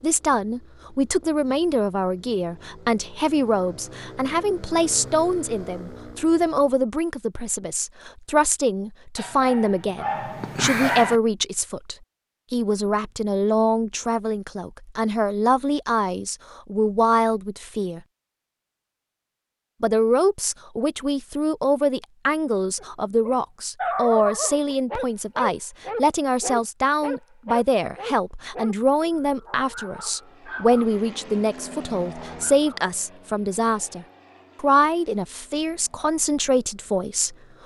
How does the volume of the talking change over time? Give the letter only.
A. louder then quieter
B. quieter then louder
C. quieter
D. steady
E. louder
D.